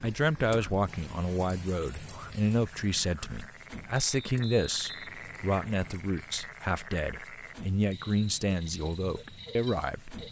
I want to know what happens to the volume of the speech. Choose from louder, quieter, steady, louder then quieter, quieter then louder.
steady.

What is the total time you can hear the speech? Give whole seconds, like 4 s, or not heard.
10 s.